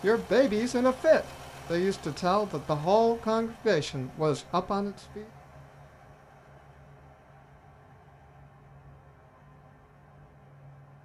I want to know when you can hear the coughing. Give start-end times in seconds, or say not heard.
not heard.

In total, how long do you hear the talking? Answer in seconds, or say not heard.
5 s.